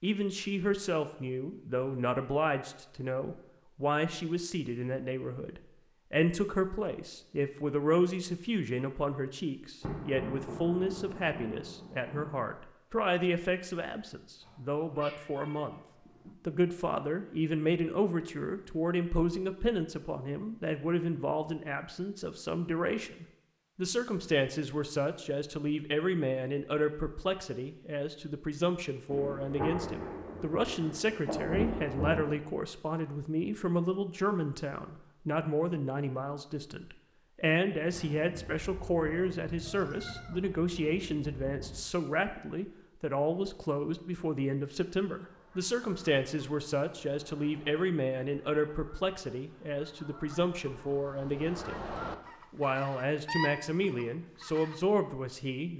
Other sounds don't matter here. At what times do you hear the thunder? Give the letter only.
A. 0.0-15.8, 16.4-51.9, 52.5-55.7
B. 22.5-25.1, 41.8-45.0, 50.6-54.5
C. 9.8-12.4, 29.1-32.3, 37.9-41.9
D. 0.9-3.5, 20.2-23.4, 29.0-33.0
C.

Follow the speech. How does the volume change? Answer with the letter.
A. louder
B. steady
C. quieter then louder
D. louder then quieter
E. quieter
B.